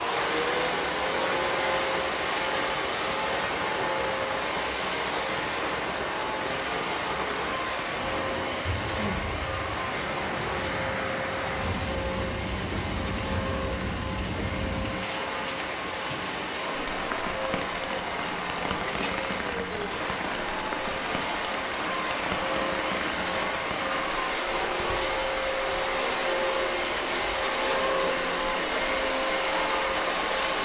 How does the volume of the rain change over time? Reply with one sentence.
The volume of the rain stays about the same.